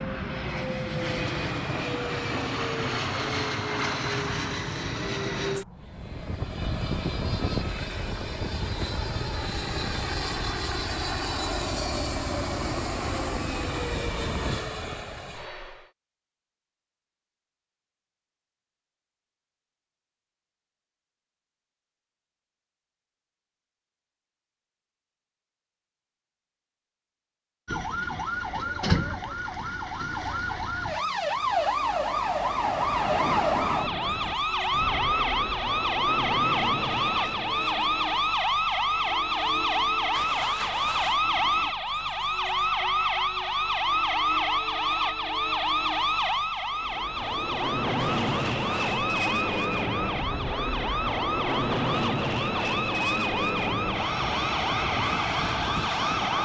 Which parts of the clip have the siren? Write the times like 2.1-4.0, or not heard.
27.6-56.3.